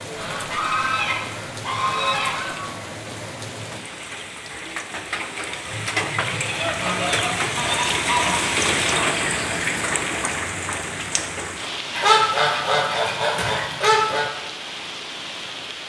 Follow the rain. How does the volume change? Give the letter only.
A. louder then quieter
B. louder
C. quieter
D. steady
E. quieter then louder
A.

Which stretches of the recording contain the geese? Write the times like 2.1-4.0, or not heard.
0.1-2.7, 5.7-8.4, 11.9-14.2.